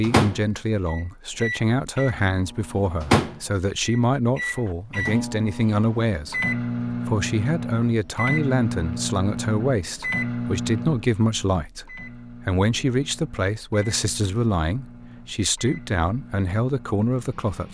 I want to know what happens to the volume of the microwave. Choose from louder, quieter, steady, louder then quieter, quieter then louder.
quieter.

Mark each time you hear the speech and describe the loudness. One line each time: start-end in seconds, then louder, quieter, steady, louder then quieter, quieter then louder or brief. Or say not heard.
0.0-17.7 steady.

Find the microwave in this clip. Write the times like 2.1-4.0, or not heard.
0.0-17.7.